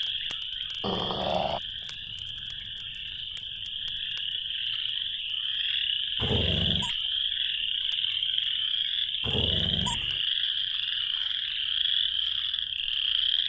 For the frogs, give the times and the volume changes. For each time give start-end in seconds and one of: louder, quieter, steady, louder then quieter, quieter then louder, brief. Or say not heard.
0.0-13.4 louder.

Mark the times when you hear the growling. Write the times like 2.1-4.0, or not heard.
0.8-1.6, 6.2-7.0, 9.2-10.2.